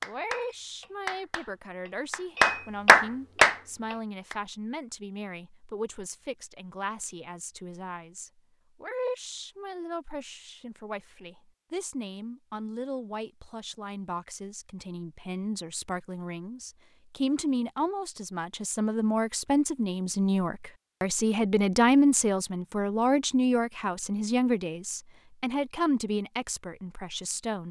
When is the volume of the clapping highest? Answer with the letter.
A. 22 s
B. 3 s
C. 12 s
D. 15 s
B.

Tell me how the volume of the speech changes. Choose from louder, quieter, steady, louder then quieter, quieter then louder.
louder.